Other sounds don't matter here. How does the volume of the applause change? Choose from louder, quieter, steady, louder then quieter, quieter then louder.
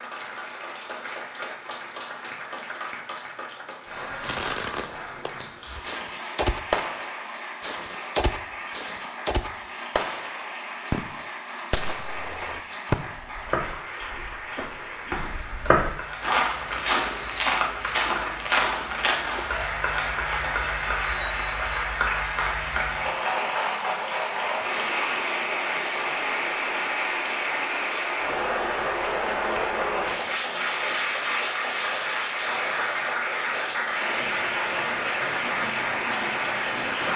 louder.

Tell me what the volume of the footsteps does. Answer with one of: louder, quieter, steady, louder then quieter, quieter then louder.
louder.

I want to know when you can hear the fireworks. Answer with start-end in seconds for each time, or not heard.
4.2-12.9.